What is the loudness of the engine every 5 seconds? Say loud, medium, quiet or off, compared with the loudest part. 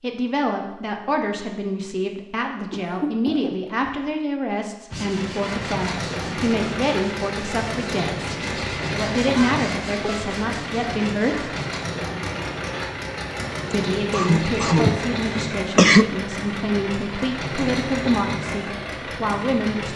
off, loud, loud, loud.